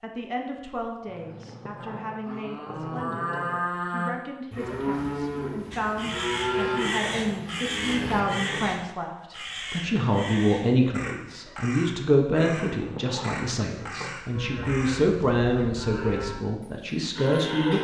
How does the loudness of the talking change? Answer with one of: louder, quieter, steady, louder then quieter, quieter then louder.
louder.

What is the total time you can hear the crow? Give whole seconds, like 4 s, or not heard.
10 s.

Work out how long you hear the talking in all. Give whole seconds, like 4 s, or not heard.
18 s.